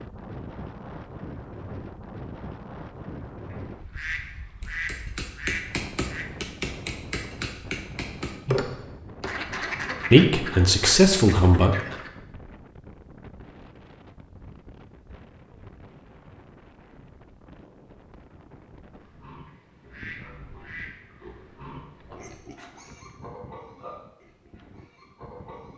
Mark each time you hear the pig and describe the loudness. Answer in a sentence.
The pig can be heard from 18.9 to 25.7 s, getting louder then quieter.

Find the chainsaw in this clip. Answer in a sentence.
You can't hear the chainsaw here.